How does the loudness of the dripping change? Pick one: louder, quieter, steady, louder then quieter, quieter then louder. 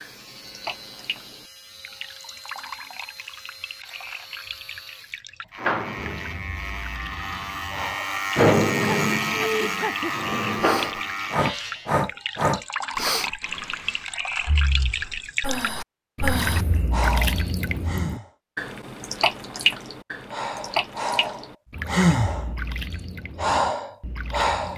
louder then quieter.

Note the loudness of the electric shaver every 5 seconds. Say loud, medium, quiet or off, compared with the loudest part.
quiet, loud, loud, off, off.